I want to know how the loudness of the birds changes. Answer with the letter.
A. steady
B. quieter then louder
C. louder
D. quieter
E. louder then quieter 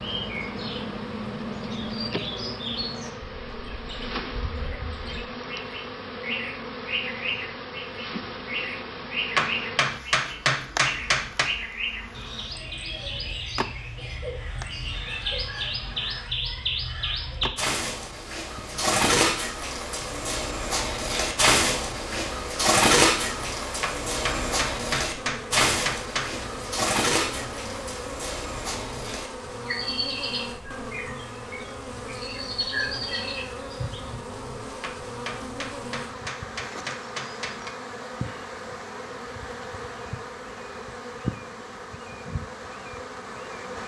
E.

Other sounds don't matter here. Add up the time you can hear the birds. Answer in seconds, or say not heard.
34 s.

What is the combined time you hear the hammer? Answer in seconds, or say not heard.
8 s.